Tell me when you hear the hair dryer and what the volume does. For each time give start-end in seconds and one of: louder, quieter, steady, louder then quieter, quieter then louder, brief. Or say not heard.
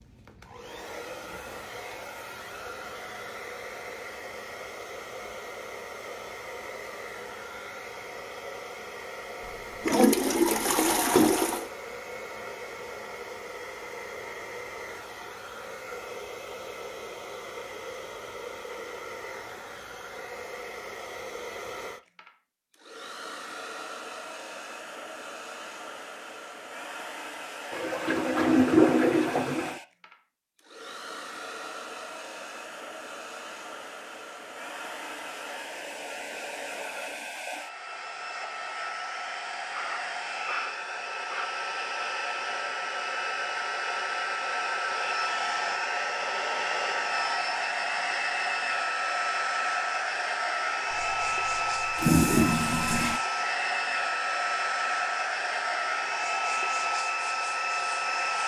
0.0-58.4 louder.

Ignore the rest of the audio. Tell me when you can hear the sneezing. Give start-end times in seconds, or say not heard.
39.7-41.5.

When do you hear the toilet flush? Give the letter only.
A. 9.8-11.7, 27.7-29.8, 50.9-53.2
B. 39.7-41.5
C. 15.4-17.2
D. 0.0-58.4
A.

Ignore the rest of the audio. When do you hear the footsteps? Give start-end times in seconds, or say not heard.
not heard.